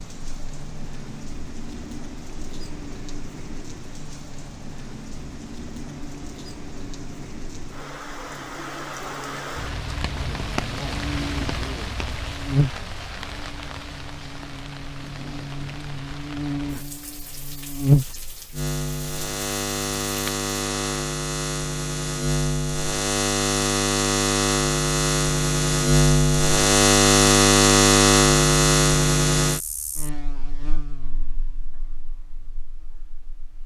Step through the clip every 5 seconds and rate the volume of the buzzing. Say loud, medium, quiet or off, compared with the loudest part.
quiet, quiet, quiet, medium, medium, loud, quiet.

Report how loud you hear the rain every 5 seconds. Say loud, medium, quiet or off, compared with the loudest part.
medium, loud, loud, medium, off, off, off.